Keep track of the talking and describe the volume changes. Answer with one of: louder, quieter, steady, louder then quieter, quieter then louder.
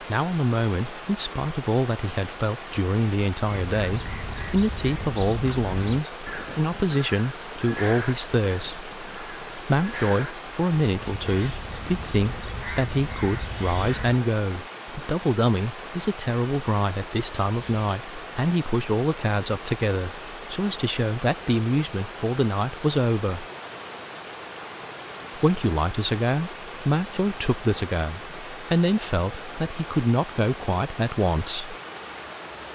steady.